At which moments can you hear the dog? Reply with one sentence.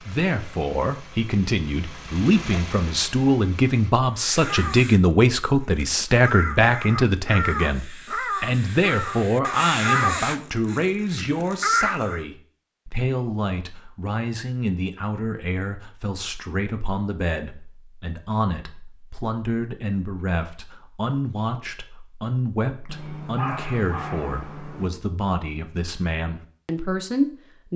The dog can be heard from 22.9 to 24.9 s.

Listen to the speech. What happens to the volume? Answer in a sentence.
The volume of the speech goes down.